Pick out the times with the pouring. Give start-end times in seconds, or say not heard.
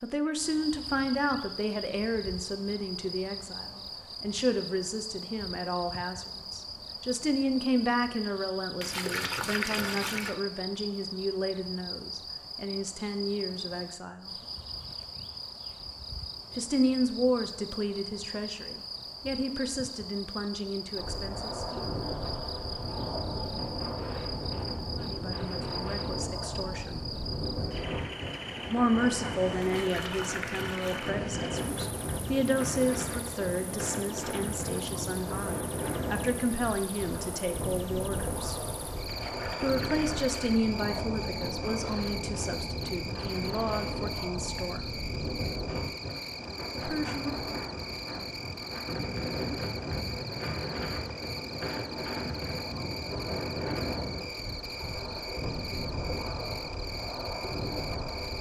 8.8-10.3, 29.6-31.2, 39.0-40.6.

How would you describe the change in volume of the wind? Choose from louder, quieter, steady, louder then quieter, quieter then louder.
steady.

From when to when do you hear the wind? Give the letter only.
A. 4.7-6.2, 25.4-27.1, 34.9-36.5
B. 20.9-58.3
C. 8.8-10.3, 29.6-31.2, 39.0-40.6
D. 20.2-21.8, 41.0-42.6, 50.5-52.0
B.